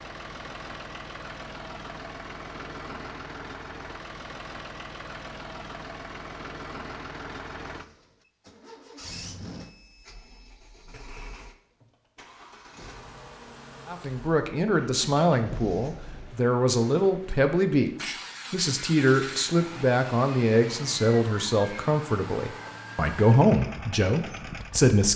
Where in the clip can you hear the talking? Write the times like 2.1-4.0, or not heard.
13.8-25.1.